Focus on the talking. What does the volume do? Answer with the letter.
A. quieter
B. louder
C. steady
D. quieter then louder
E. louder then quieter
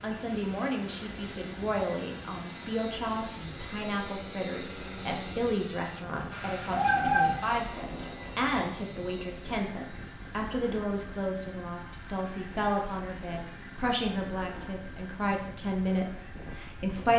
C.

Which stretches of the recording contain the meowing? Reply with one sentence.
The meowing can be heard from 6.2 to 8.2 s.